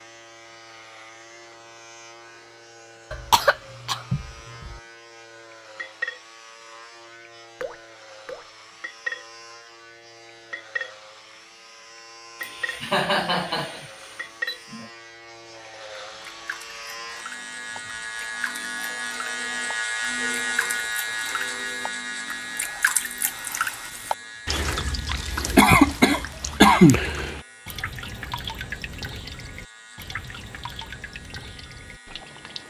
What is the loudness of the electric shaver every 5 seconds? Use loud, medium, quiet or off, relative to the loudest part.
quiet, quiet, quiet, loud, loud, quiet, quiet.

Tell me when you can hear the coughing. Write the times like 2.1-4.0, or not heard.
3.1-4.8, 12.4-14.9, 25.6-27.0.